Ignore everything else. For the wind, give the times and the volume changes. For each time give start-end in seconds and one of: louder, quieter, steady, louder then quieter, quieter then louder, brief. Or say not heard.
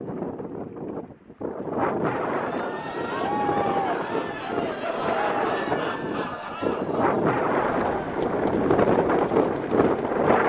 0.0-10.4 louder.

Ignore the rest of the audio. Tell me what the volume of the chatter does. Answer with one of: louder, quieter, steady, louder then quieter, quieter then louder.
quieter.